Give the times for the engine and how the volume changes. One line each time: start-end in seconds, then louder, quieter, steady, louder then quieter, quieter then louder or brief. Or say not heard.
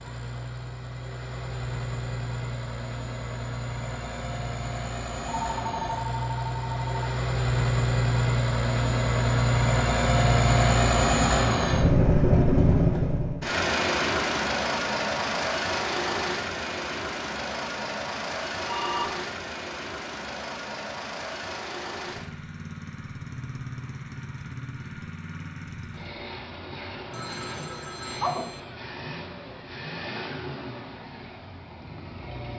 0.0-32.5 louder then quieter.